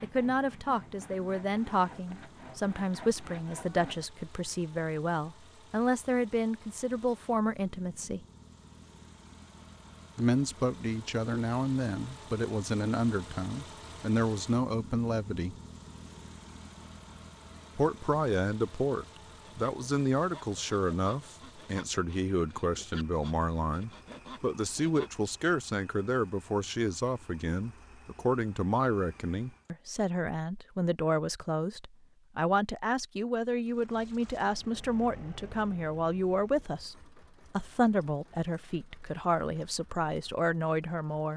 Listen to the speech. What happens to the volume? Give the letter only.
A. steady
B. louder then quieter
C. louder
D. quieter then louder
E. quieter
A.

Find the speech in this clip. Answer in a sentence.
The speech can be heard from 0.0 to 8.2 s, from 10.2 to 15.6 s and from 17.8 to 41.3 s.